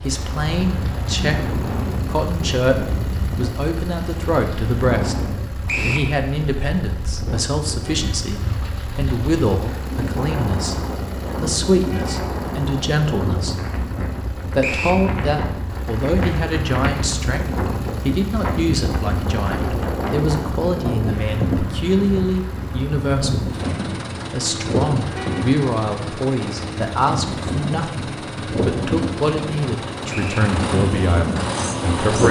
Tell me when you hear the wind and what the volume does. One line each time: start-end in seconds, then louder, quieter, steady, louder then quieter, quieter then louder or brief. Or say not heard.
0.0-32.2 steady.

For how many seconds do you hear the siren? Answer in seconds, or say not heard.
not heard.